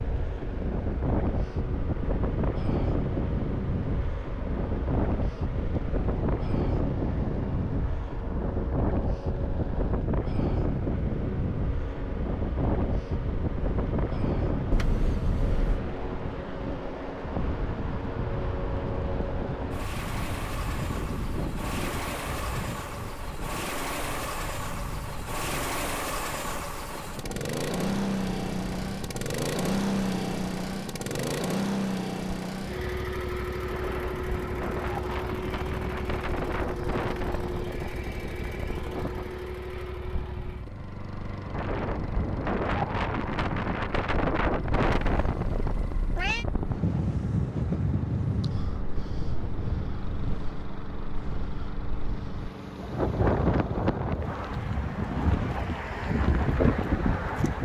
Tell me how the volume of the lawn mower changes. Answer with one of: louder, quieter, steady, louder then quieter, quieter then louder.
louder then quieter.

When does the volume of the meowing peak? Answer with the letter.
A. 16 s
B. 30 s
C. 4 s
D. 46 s
D.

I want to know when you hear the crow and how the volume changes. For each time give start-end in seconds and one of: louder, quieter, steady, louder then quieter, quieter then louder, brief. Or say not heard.
not heard.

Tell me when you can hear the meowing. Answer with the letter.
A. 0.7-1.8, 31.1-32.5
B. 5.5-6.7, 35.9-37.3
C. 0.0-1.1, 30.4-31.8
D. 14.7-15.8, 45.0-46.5
D.